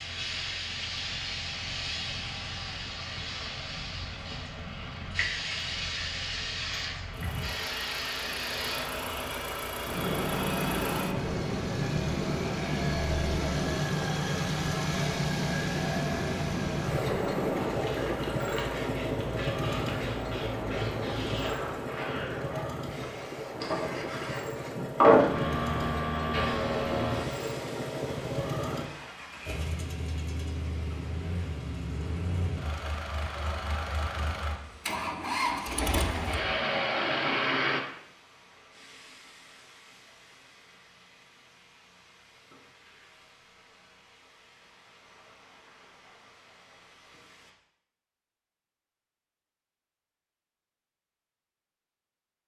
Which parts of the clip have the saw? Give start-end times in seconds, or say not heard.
not heard.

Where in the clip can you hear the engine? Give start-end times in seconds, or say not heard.
0.0-37.8.